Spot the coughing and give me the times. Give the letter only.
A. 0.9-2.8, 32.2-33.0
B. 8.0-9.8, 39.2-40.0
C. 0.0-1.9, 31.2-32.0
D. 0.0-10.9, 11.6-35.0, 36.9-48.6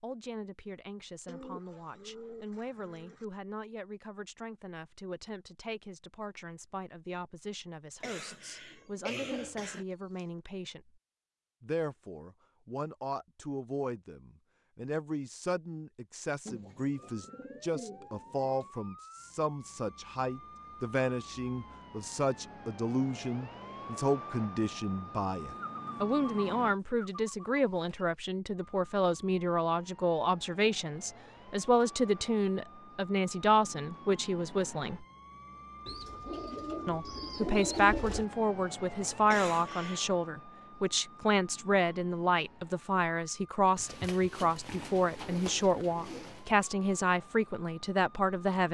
B.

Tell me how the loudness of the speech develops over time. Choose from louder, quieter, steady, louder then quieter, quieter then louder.
louder.